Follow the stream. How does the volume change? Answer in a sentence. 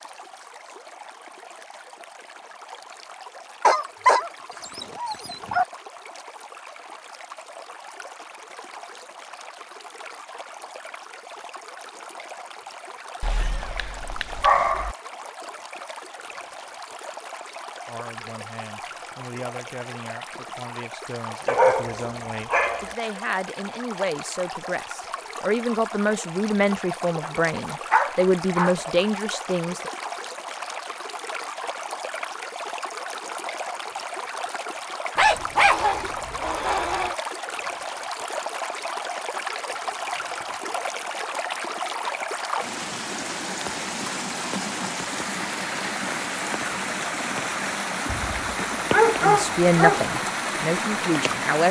The volume of the stream goes up.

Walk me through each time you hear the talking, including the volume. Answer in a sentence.
You can hear the talking from 17.9 to 29.9 s, getting louder; and briefly from 49.2 to 51.6 s.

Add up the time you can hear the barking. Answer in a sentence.
The barking can be heard for 11 seconds in total.